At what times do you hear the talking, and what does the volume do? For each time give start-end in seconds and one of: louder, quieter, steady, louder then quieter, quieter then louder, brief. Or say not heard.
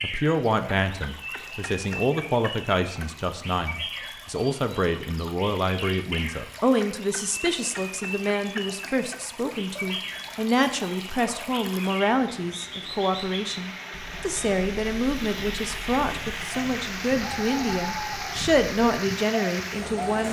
0.0-20.2 steady.